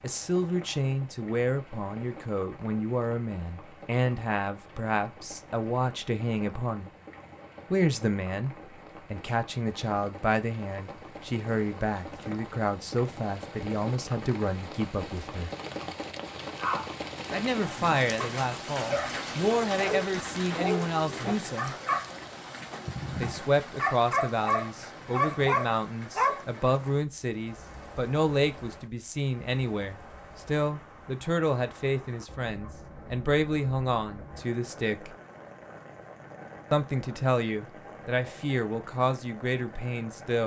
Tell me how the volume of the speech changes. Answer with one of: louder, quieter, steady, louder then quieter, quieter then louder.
steady.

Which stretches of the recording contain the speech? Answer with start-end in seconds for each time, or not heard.
0.0-6.9, 7.7-15.5, 17.3-21.8, 23.2-35.1, 36.7-40.4.